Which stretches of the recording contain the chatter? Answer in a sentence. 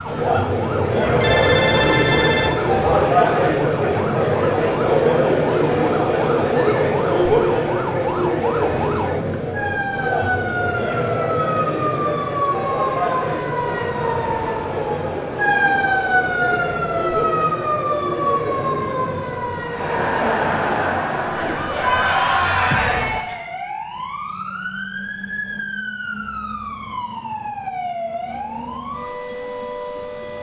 The chatter can be heard from 0.0 to 23.4 s.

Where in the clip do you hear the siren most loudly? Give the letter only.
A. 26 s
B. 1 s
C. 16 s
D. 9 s
C.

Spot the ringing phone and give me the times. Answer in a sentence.
You can hear the ringing phone from 1.0 to 2.8 s.